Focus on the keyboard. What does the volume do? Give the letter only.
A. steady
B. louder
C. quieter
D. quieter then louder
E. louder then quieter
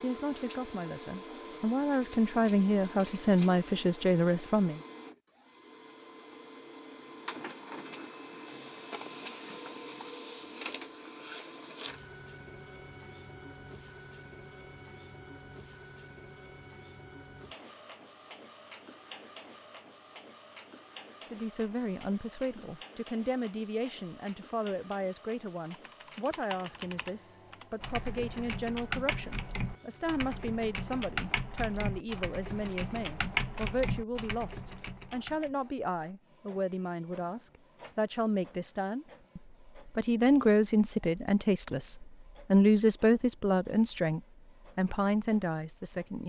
B.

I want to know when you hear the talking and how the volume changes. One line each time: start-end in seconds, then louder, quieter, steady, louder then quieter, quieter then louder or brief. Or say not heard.
0.0-4.8 louder
21.3-46.2 louder.